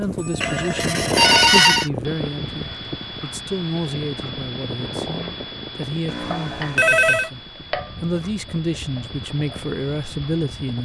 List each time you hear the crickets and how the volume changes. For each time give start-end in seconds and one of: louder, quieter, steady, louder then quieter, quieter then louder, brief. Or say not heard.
not heard.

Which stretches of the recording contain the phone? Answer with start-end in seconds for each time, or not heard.
0.4-1.9, 6.0-7.3.